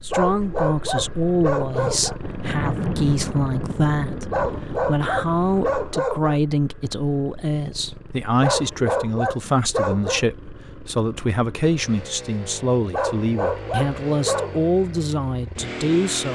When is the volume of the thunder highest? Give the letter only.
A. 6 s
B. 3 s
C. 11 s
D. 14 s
B.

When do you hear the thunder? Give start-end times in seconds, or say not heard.
2.2-4.8.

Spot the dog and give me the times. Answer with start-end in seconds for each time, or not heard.
0.1-2.2, 4.3-6.4, 8.4-10.2, 12.9-14.6.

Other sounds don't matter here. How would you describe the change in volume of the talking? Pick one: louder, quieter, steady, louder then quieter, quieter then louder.
steady.